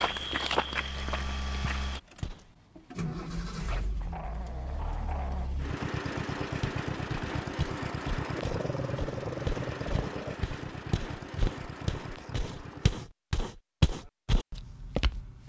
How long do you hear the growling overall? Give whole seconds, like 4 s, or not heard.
4 s.